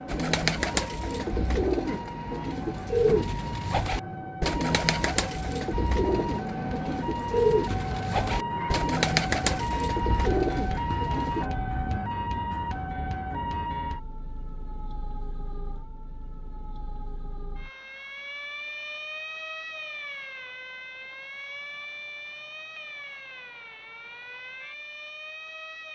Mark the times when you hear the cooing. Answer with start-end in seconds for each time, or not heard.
0.1-11.5.